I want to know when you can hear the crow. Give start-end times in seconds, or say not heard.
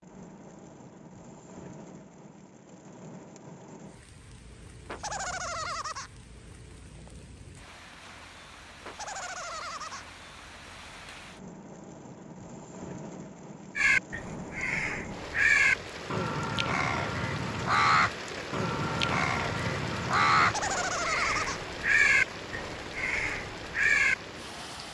13.8-24.1.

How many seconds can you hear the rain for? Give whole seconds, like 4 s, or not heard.
25 s.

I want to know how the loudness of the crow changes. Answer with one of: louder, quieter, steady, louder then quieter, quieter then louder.
steady.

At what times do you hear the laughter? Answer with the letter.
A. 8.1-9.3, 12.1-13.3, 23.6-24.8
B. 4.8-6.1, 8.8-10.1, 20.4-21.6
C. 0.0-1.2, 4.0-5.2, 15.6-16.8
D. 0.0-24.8
B.